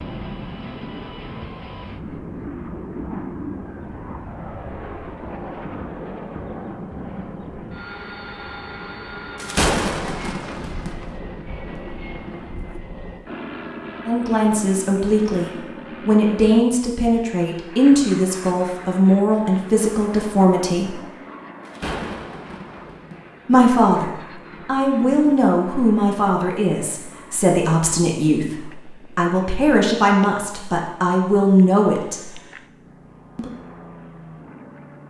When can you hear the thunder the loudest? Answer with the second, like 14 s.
10 s.